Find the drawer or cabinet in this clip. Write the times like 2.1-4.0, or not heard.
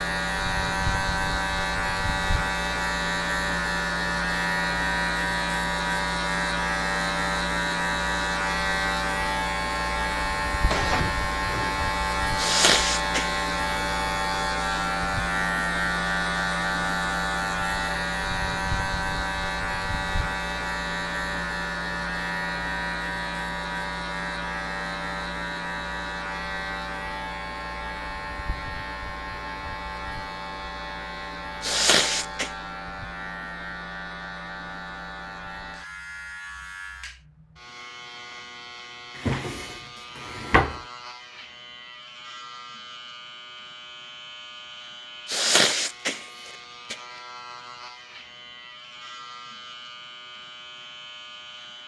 10.7-11.7, 39.1-40.8.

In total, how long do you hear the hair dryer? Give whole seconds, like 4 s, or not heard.
not heard.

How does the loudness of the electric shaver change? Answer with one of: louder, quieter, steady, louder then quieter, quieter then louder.
quieter.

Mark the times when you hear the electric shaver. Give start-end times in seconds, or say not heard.
0.0-51.8.